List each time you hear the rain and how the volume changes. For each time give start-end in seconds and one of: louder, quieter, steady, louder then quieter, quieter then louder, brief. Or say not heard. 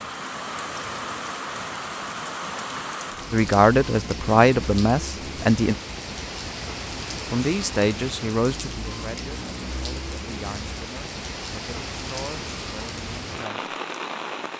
0.0-14.5 steady.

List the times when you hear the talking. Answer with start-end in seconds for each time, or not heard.
3.3-5.8, 7.3-13.7.